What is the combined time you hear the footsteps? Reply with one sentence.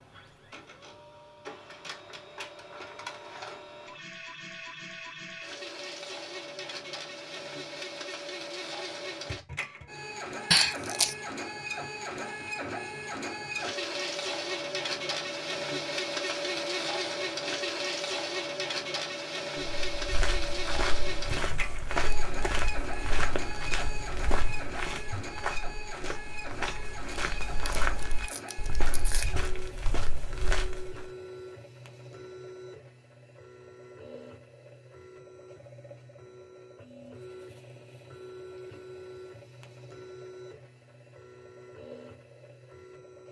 The footsteps can be heard for 11 seconds in total.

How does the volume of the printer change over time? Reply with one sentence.
The volume of the printer goes up, then down.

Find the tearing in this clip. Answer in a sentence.
You can hear the tearing from 10.5 to 11.2 s and from 27.8 to 29.4 s.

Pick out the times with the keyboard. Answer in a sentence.
The keyboard can't be heard in this clip.